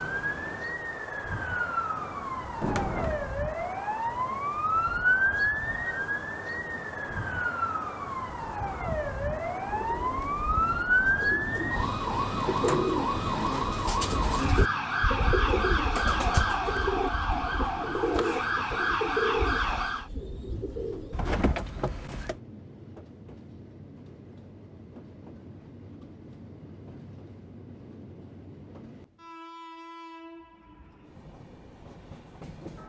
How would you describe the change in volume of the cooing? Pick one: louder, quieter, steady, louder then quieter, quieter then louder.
louder.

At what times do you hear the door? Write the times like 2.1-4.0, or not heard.
2.6-3.2, 21.1-22.4.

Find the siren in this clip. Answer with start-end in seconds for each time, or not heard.
0.0-20.1.